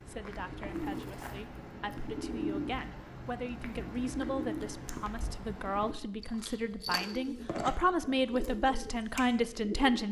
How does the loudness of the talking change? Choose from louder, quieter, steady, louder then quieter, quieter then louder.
louder.